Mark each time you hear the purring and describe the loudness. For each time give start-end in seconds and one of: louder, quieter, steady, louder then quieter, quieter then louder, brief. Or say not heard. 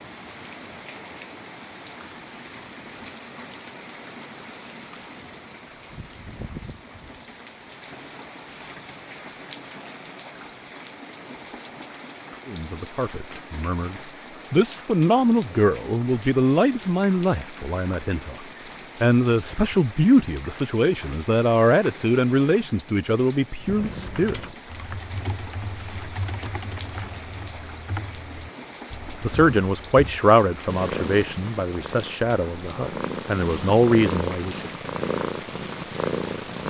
30.6-36.6 louder.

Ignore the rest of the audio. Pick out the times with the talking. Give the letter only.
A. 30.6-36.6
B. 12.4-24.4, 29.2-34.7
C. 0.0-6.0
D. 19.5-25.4
B.